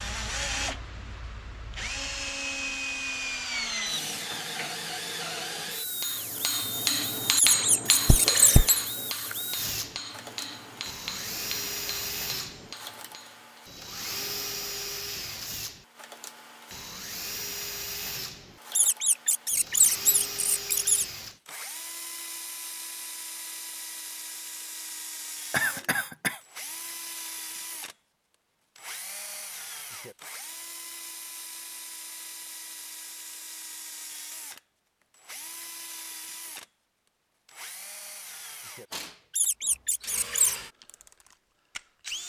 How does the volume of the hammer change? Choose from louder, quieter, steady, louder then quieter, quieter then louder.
quieter.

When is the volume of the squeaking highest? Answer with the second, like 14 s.
20 s.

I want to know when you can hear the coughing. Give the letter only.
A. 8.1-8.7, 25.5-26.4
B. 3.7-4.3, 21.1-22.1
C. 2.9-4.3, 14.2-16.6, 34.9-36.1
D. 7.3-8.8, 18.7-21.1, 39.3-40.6
A.